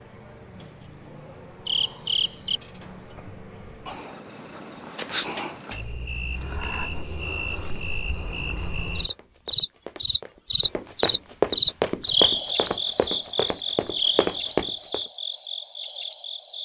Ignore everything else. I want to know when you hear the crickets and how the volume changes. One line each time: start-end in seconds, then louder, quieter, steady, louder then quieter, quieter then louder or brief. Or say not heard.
0.0-16.6 louder then quieter.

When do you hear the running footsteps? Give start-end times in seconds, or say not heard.
9.1-15.0.